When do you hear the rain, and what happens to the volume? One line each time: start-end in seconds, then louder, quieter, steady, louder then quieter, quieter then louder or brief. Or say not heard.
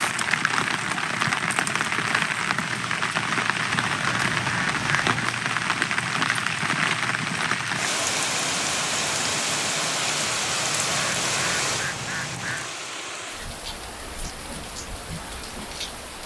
0.0-16.2 quieter.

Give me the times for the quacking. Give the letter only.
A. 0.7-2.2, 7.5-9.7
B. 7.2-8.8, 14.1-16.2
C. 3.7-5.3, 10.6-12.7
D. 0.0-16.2
C.